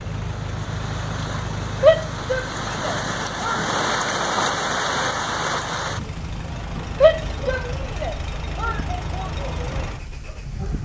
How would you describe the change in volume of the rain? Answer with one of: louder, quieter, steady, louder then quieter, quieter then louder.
louder then quieter.